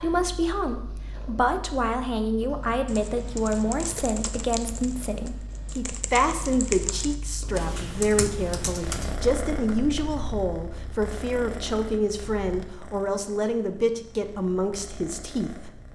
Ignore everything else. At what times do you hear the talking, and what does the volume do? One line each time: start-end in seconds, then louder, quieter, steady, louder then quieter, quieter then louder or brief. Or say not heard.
0.0-15.7 steady.